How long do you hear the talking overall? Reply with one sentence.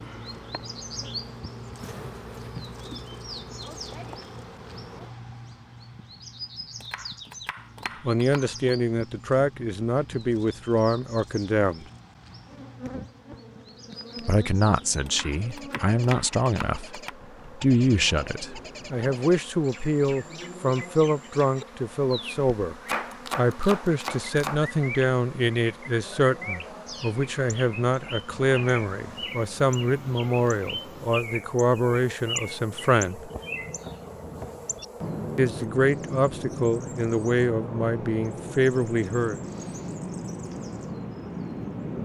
The talking can be heard for 26 seconds in total.